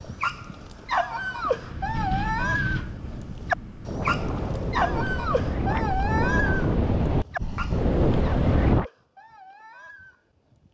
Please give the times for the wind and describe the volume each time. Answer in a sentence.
You can hear the wind from 0.0 to 8.8 s, getting louder.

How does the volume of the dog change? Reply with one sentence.
The loudness of the dog goes down.